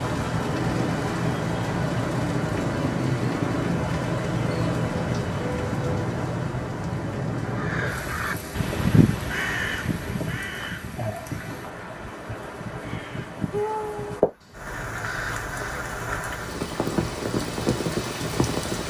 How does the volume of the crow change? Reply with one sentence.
The loudness of the crow goes down.